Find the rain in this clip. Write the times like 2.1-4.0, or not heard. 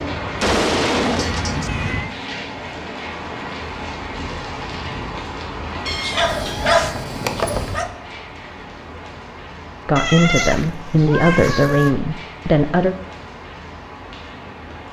0.0-14.8.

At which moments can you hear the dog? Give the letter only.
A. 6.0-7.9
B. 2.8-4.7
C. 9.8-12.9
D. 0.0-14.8
A.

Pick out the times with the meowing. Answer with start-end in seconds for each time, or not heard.
0.4-2.1, 5.8-7.0, 9.9-11.9.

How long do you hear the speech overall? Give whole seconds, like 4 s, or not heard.
3 s.